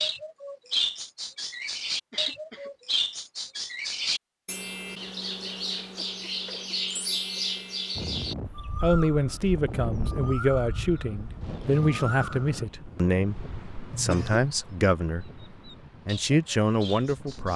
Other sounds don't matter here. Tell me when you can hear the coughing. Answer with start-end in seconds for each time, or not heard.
2.1-2.8, 6.0-7.6, 13.9-14.6.